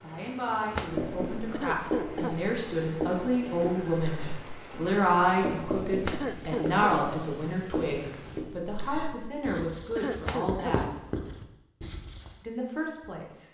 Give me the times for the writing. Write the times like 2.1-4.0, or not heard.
0.8-12.4.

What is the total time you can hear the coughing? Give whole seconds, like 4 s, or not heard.
3 s.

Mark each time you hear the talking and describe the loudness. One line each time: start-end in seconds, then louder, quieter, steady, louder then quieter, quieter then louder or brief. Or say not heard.
0.0-10.8 louder then quieter
12.4-13.4 brief.